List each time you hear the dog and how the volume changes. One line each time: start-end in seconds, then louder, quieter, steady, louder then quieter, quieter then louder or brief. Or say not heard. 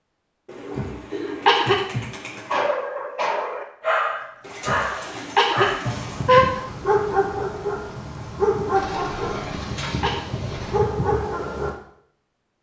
2.5-11.8 steady.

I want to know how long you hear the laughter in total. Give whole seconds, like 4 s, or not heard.
4 s.